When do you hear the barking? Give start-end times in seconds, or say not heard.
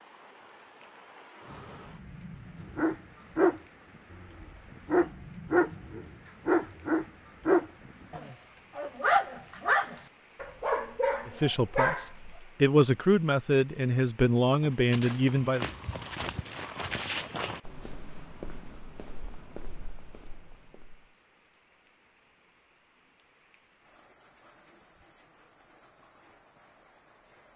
2.7-12.1.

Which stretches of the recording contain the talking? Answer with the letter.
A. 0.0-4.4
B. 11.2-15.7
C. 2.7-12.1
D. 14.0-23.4
B.